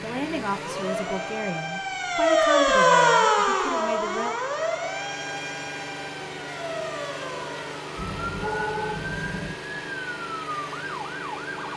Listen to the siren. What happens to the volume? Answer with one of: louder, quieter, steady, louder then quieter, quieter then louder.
quieter.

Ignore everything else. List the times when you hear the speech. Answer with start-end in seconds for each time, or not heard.
0.0-4.3.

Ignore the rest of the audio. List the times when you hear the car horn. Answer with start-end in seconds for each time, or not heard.
8.0-9.6.